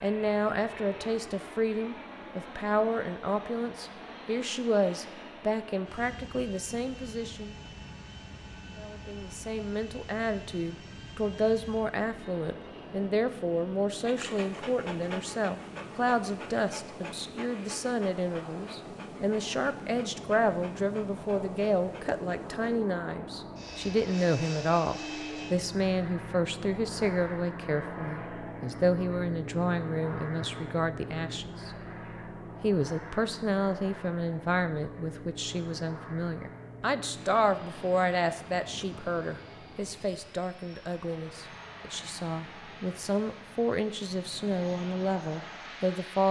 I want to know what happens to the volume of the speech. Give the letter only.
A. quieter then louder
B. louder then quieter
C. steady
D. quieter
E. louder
C.